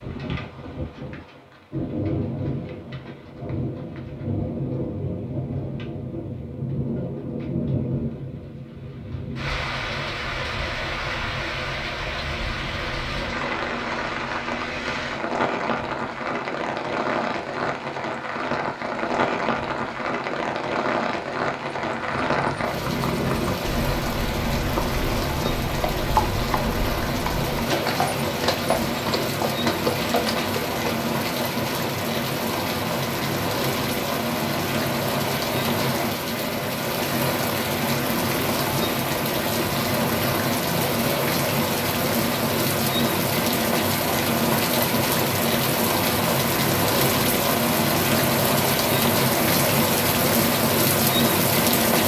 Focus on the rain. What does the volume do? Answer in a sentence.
The loudness of the rain goes up.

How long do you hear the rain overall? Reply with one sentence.
You can hear the rain for 52 seconds altogether.